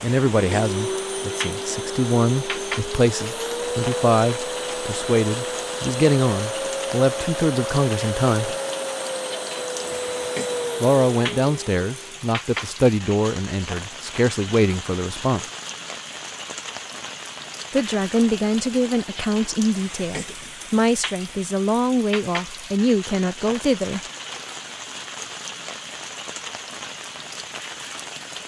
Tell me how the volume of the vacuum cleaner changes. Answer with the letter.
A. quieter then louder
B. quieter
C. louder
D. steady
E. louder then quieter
D.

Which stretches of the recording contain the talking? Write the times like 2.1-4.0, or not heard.
0.0-8.6, 10.8-15.4, 17.7-24.0.